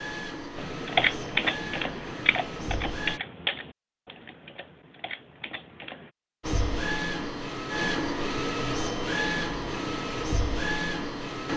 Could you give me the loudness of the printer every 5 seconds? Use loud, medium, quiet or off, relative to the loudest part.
medium, loud, loud.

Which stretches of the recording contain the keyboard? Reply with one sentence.
The keyboard can be heard from 0.6 to 6.1 s.